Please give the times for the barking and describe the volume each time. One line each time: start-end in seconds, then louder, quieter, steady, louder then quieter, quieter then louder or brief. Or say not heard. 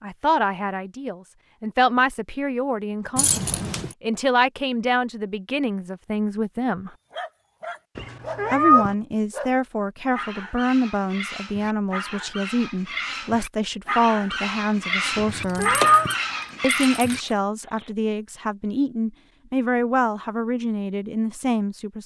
7.1-17.9 louder.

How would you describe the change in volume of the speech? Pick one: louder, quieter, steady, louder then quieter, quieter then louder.
steady.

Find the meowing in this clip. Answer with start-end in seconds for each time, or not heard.
8.0-8.9, 15.2-16.1.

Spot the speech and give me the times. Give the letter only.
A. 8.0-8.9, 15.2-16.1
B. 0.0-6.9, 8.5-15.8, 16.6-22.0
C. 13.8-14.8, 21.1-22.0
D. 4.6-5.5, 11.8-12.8
B.